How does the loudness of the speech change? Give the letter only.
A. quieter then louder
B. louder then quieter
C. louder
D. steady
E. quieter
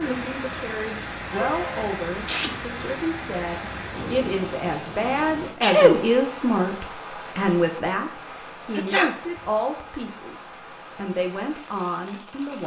B.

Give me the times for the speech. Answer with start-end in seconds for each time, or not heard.
0.0-12.6.